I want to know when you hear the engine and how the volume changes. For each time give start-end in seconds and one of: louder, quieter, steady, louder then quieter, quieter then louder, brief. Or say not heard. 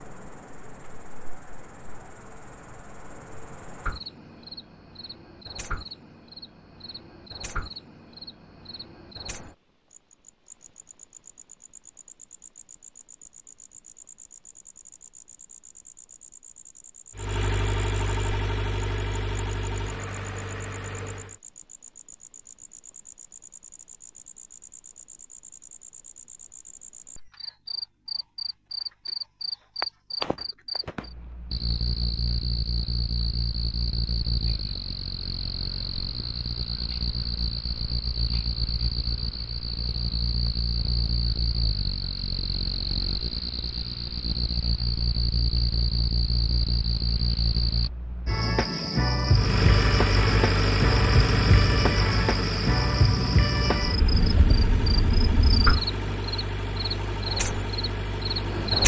17.1-21.4 quieter
49.3-58.8 quieter.